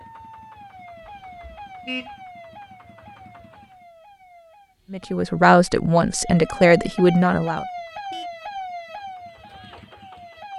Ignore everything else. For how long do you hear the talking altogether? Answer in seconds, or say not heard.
3 s.